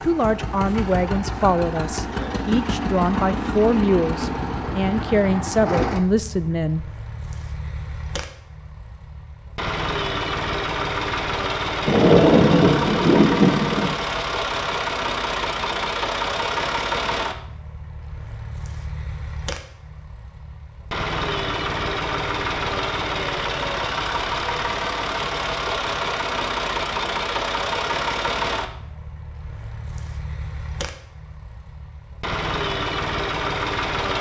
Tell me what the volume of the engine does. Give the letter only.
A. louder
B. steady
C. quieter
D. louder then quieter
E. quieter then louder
B.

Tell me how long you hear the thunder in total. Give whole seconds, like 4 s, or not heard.
2 s.